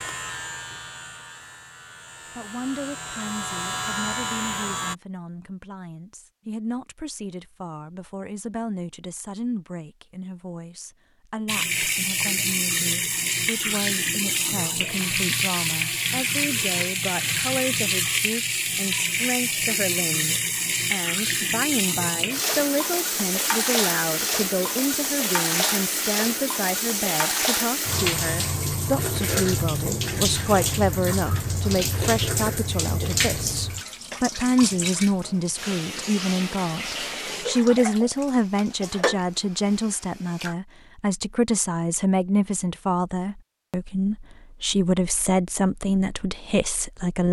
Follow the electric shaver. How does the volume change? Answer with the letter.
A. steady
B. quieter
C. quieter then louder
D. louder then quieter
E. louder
C.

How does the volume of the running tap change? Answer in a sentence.
The loudness of the running tap goes down.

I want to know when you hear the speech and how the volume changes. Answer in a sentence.
The speech can be heard from 2.4 to 47.2 s, getting louder.